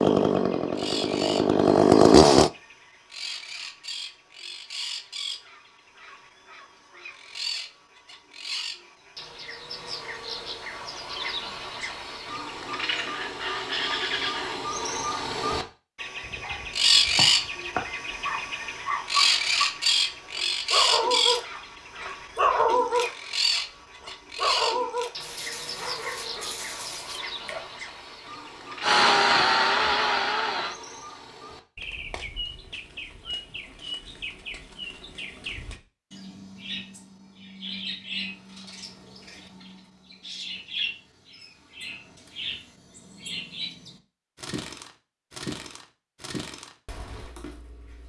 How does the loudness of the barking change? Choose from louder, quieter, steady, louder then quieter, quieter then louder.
louder then quieter.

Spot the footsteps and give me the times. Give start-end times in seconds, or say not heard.
not heard.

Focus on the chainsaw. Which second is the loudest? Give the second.
2 s.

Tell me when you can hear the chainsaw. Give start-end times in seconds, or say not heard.
0.0-2.5, 28.8-30.8.